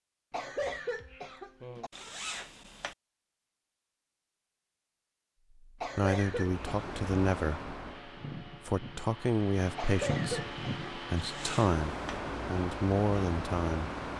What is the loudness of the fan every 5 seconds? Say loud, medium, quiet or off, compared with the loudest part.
off, medium, loud.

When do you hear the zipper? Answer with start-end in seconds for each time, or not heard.
1.9-3.0, 11.2-12.2.